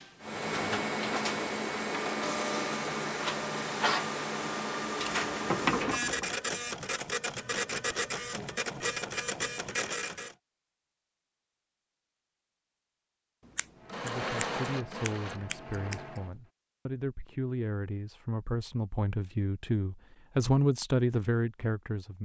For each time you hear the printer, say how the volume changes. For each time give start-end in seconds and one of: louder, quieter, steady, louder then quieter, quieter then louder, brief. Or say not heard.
0.0-10.3 steady
13.8-16.3 brief.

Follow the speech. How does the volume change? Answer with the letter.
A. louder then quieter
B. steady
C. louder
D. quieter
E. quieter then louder
C.